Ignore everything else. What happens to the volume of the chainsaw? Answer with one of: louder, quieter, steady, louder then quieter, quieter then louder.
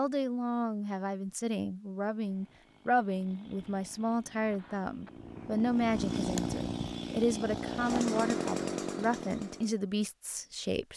louder.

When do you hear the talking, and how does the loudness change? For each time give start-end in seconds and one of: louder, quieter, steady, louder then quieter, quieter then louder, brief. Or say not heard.
0.0-10.9 steady.